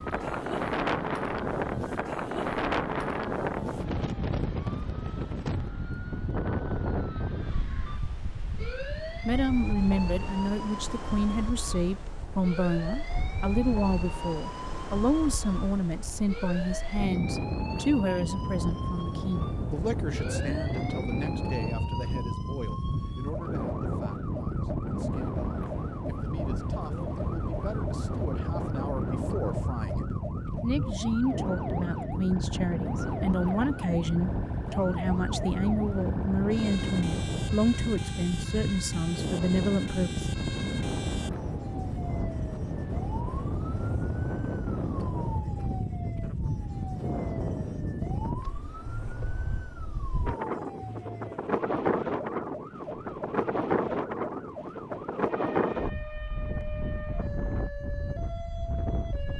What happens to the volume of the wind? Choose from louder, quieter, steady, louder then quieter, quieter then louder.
steady.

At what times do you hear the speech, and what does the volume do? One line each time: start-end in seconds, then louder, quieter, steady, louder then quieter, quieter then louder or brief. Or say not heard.
9.2-40.2 quieter then louder.